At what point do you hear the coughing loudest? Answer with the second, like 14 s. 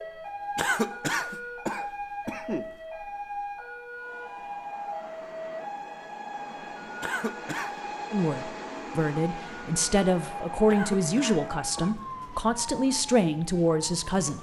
1 s.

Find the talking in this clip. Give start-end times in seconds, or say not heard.
8.1-14.3.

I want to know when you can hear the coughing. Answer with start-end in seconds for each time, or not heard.
0.6-2.7, 7.0-7.8, 10.7-11.9.